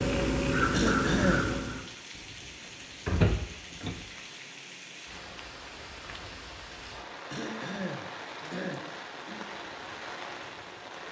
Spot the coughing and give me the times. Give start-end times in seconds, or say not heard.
0.7-1.6, 7.3-9.4.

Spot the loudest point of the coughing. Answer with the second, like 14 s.
1 s.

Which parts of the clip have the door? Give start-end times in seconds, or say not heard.
2.1-4.0.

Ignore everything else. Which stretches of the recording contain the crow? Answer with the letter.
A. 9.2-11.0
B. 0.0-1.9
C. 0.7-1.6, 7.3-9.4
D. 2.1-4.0
B.